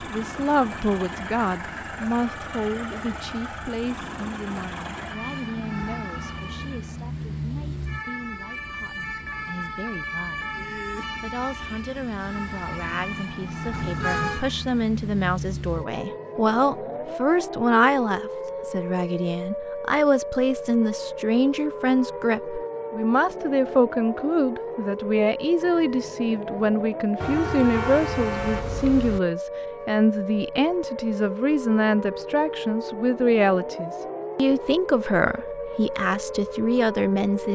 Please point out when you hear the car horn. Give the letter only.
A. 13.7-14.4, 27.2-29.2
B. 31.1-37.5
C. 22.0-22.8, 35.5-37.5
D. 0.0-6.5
A.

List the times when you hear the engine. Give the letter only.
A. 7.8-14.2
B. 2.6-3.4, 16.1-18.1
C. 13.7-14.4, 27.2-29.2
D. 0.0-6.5
D.